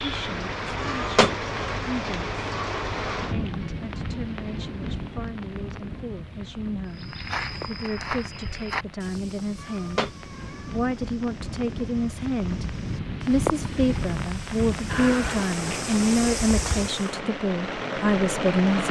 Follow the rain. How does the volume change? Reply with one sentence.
The loudness of the rain goes down, then up.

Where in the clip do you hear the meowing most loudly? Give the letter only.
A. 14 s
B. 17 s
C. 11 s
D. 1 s
D.